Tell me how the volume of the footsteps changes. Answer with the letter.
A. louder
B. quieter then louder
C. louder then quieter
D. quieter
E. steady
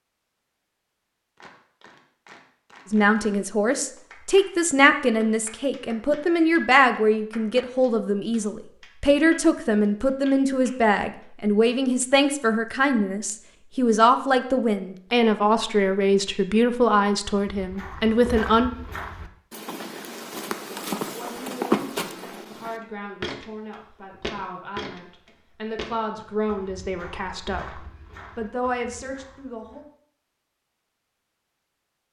C.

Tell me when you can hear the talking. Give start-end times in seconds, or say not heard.
2.9-18.7, 21.1-29.9.